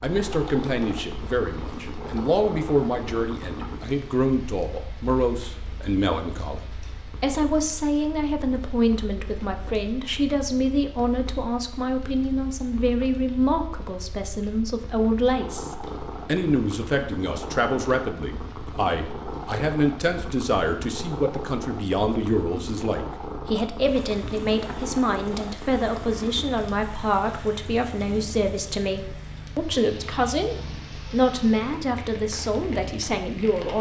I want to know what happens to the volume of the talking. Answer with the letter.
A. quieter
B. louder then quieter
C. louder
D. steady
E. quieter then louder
D.